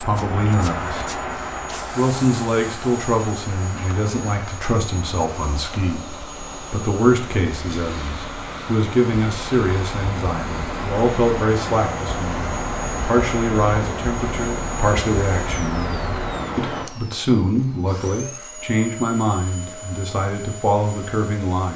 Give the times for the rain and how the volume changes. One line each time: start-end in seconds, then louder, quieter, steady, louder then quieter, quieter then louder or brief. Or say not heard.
0.0-16.9 quieter then louder.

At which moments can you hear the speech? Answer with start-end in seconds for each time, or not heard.
0.0-1.1, 1.9-21.7.